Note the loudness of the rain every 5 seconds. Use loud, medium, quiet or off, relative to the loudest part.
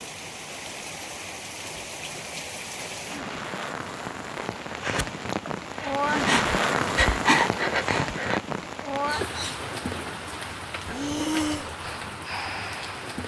medium, loud, medium.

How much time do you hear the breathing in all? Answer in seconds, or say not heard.
6 s.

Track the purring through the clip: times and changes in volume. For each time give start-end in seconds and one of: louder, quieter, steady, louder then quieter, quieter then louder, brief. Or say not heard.
not heard.